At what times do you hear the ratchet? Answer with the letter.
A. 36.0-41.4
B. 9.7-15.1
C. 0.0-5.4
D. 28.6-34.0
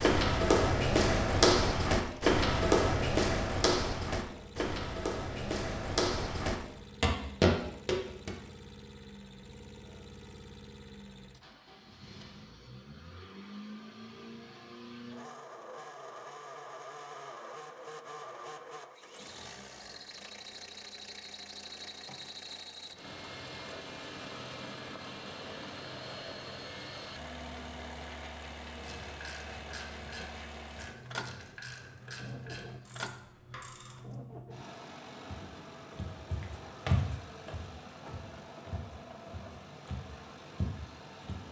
D.